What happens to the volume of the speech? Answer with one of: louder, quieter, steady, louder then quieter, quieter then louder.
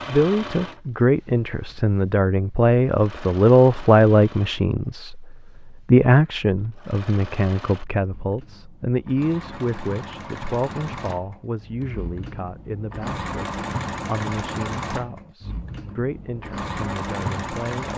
quieter.